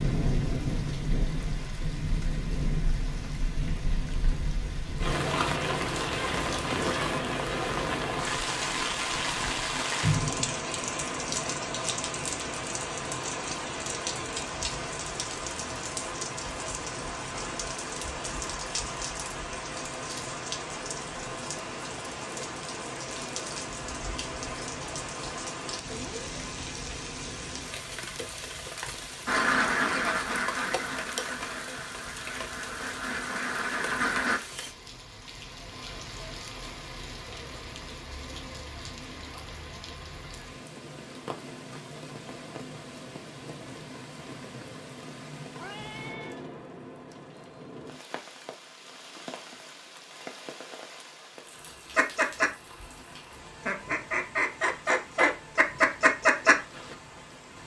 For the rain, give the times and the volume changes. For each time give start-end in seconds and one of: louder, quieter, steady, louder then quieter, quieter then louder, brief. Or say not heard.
0.0-57.6 quieter.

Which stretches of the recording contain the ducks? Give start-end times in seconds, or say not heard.
29.2-34.4, 52.0-57.0.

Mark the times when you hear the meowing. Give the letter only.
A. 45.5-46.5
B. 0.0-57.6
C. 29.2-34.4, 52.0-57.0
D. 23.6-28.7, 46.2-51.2
A.